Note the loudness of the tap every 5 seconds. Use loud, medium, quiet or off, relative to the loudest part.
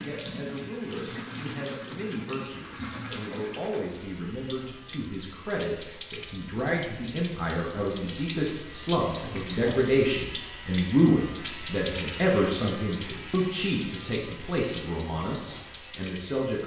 medium, loud, loud, medium.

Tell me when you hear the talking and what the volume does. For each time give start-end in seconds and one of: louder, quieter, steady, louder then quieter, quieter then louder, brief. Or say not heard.
0.0-16.6 louder then quieter.